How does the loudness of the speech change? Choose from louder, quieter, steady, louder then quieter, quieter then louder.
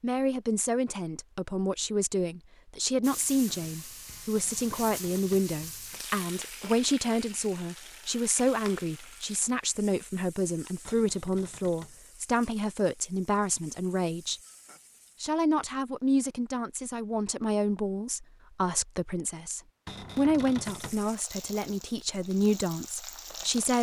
steady.